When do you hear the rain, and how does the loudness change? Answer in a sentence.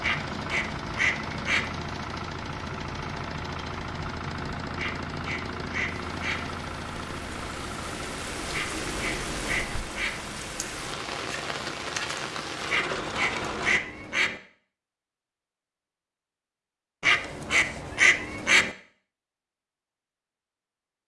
You can hear the rain from 0.2 to 13.8 s, getting louder.